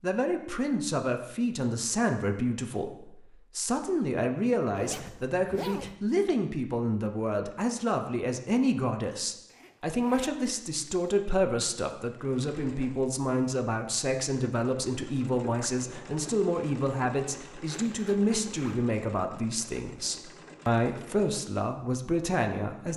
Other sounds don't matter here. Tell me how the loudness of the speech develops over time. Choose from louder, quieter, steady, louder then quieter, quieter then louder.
steady.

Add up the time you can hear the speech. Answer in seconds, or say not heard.
23 s.